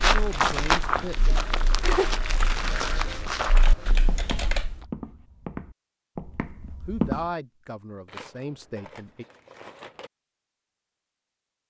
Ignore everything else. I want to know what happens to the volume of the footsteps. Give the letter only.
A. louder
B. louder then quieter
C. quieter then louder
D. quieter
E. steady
D.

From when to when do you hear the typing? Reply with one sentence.
You can hear the typing from 0.1 to 4.8 s.